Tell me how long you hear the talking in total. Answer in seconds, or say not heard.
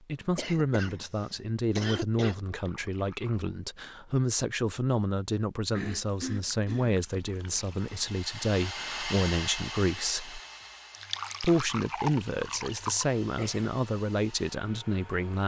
14 s.